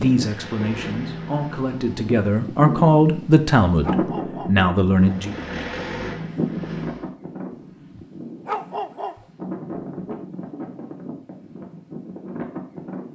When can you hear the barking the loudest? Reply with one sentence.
The loudest moment of the barking is at 9 seconds.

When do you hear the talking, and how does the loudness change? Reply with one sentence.
The talking can be heard from 0.0 to 5.3 s, getting louder.